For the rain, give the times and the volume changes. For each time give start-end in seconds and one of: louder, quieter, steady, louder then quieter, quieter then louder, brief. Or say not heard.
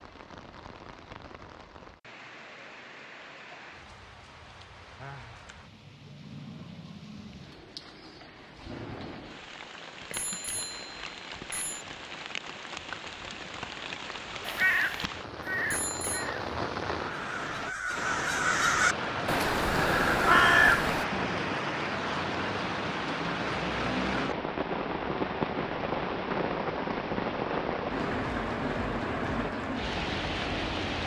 0.0-31.0 louder.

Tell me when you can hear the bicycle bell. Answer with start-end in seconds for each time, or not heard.
10.1-11.8, 15.7-16.3.